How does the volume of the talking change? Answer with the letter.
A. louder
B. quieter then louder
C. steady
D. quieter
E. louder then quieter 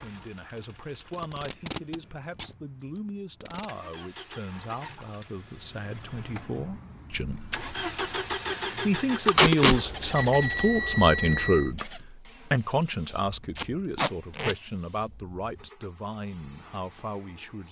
E.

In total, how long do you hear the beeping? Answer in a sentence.
The beeping can be heard for 2 seconds in total.